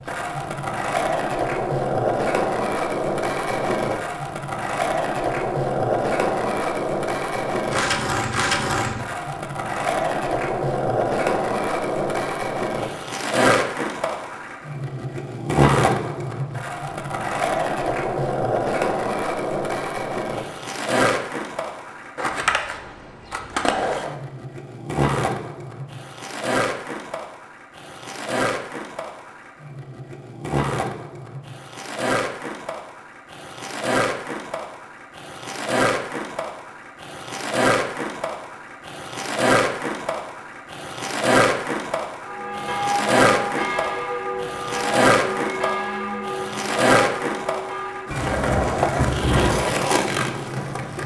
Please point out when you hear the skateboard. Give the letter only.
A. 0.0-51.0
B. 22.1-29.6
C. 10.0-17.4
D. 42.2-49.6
A.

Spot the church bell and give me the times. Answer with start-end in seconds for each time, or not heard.
42.2-49.6.